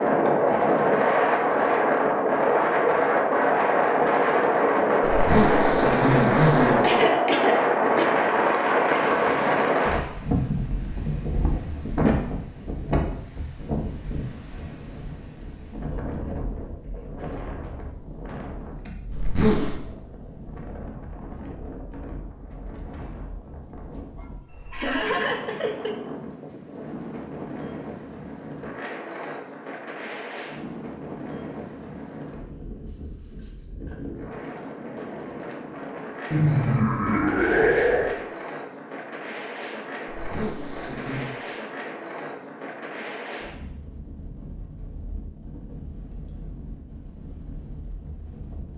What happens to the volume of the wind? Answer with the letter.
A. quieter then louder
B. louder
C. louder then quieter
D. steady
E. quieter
E.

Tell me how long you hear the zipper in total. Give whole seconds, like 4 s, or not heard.
4 s.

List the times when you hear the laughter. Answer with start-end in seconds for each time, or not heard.
6.8-8.1, 24.1-25.9, 36.3-38.1.